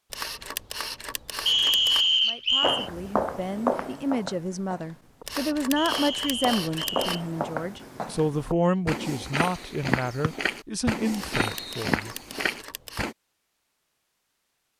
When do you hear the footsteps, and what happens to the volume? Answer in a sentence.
You can hear the footsteps from 2.6 to 13.2 s, getting quieter then louder.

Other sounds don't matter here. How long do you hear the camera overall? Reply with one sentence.
You can hear the camera for 6 seconds altogether.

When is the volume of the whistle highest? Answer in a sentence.
The volume of the whistle peaks at 2 seconds.